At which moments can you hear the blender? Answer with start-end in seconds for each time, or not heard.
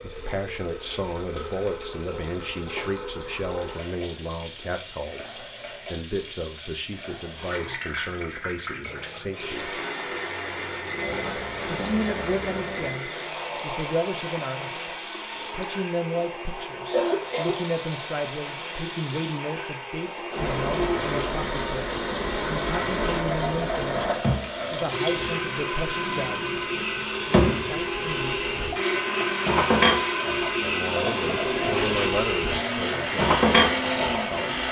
9.3-34.6.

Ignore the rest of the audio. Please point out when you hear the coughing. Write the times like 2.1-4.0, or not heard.
16.9-17.6.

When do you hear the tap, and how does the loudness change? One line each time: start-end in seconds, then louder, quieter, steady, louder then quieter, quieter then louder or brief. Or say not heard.
0.0-34.6 louder.